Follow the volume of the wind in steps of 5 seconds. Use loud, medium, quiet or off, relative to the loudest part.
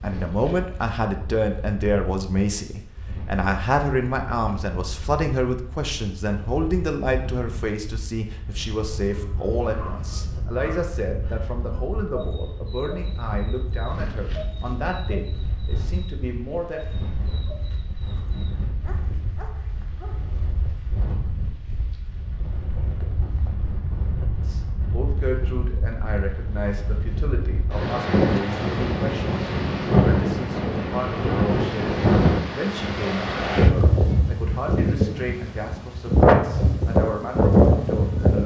quiet, quiet, quiet, quiet, quiet, medium, loud, loud.